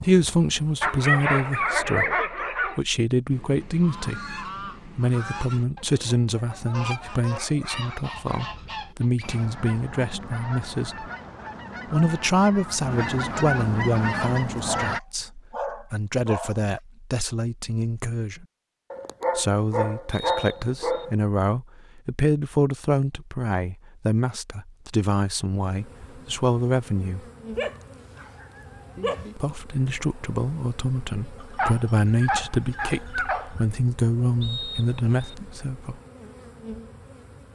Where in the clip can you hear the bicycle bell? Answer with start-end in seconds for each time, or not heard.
not heard.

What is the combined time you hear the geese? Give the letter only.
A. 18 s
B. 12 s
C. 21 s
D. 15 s
B.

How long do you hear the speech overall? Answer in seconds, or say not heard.
32 s.